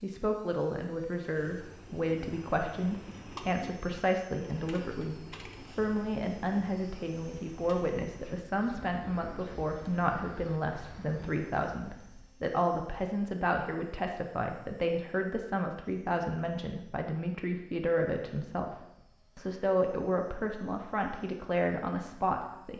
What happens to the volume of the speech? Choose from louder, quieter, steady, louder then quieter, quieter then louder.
steady.